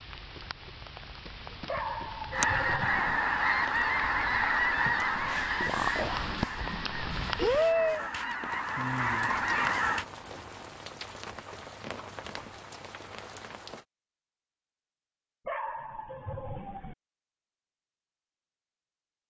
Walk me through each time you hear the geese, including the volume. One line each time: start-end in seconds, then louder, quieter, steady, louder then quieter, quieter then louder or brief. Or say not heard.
2.3-10.1 quieter then louder.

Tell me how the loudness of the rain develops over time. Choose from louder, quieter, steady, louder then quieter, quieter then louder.
louder then quieter.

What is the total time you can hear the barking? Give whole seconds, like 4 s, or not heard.
3 s.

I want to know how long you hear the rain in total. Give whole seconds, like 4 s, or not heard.
14 s.